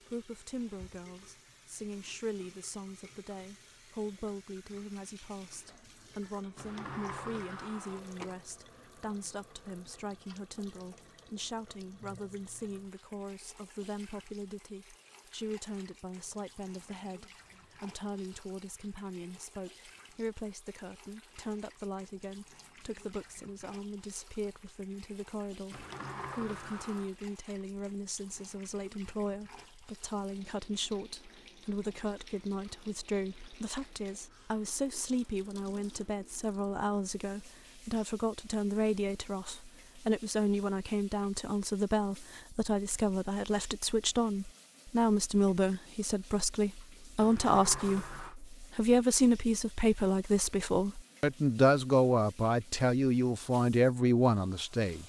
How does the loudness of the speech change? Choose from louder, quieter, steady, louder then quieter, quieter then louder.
louder.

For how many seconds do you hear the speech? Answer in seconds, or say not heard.
55 s.